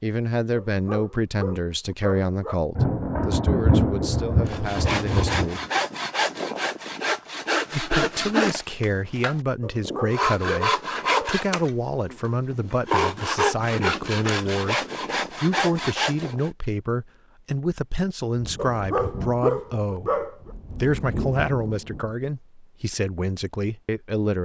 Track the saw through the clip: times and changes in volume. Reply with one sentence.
You can hear the saw from 4.5 to 16.5 s, at a steady volume.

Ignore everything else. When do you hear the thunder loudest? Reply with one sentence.
The loudest moment of the thunder is at 4 seconds.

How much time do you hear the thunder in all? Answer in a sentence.
The thunder can be heard for 7 seconds in total.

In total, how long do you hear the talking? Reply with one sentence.
The talking can be heard for 22 seconds in total.